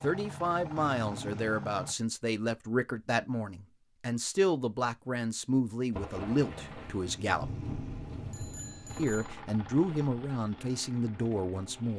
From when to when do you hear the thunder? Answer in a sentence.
The thunder can be heard from 5.9 to 9.1 s.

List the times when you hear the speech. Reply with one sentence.
The speech can be heard from 0.0 to 7.5 s and from 8.9 to 11.9 s.